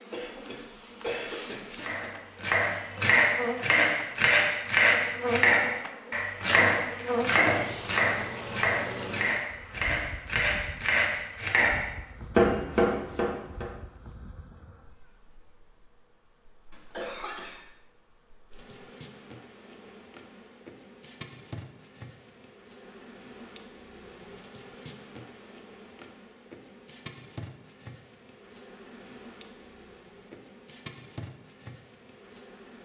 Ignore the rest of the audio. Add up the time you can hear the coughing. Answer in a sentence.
You can hear the coughing for 3 seconds altogether.